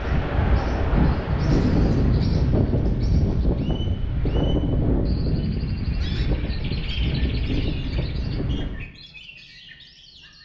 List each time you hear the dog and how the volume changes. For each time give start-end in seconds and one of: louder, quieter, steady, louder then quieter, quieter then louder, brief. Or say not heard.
not heard.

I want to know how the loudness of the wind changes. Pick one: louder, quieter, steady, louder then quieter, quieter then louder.
quieter.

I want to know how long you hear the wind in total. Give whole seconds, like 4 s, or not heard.
9 s.